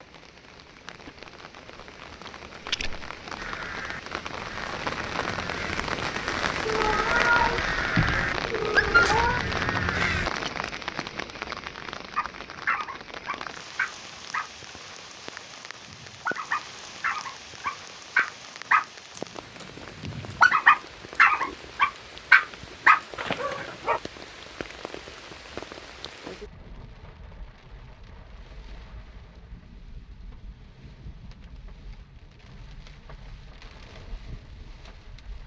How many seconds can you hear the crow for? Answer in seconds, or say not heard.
7 s.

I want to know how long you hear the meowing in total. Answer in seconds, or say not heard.
3 s.